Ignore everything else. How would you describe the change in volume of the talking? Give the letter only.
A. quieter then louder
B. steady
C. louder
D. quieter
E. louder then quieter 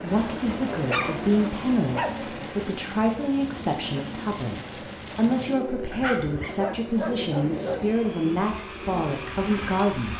B.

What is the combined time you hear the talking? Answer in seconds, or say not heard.
10 s.